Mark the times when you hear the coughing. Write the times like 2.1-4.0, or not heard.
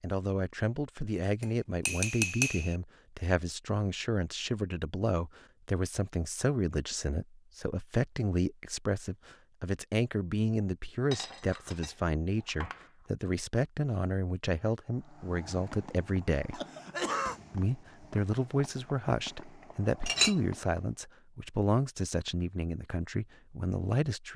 16.5-17.4.